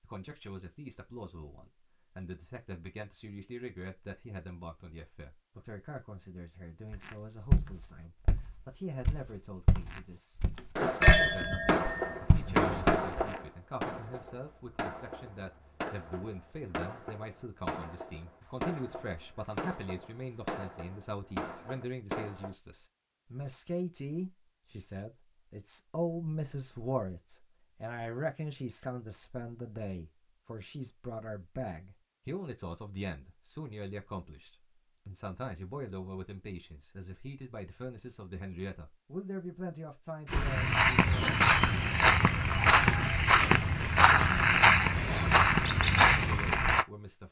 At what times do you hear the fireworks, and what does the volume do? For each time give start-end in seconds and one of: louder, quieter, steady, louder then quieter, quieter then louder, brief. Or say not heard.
10.8-22.5 quieter.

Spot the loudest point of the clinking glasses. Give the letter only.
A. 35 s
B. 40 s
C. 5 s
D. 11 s
D.